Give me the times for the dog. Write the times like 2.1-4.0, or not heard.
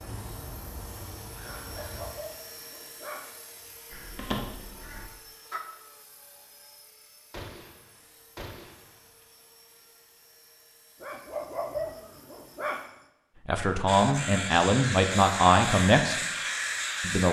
1.4-3.8, 11.0-12.9.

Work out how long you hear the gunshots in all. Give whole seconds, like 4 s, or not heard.
2 s.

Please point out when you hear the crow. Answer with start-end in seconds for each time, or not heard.
0.0-2.1, 3.9-5.6, 13.8-17.2.